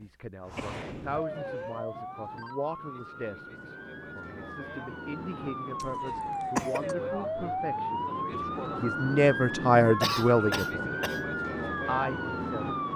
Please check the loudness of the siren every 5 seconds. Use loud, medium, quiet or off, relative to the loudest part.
medium, loud, loud.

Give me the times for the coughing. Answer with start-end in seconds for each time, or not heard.
0.6-1.7, 5.8-7.0, 10.0-11.2.